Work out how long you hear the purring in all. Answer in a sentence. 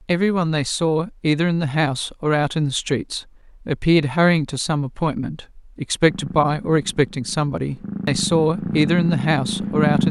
The purring can be heard for 4 seconds in total.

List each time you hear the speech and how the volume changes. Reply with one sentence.
The speech can be heard from 0.1 to 10.0 s, at a steady volume.